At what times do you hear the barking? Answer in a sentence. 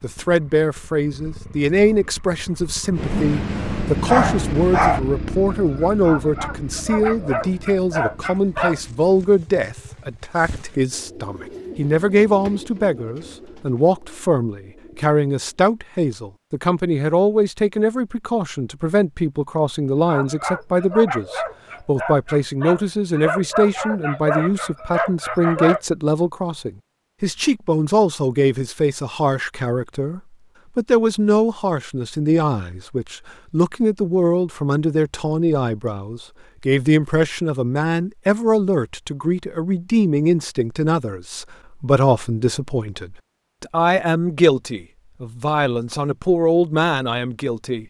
You can hear the barking from 3.0 to 8.8 s and from 20.1 to 25.8 s.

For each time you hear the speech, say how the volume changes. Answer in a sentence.
You can hear the speech from 0.0 to 47.8 s, at a steady volume.